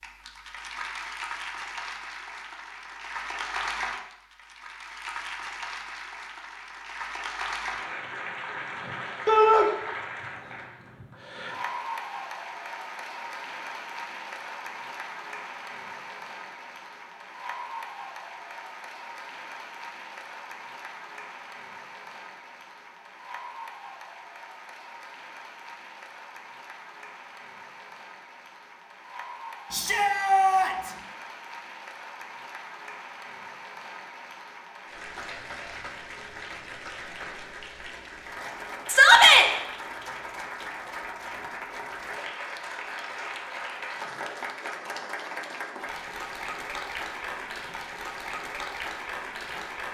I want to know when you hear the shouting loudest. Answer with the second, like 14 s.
39 s.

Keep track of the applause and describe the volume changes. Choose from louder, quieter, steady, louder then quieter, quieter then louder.
quieter then louder.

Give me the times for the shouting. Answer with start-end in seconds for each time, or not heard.
9.2-9.7, 29.7-30.9, 38.9-39.5.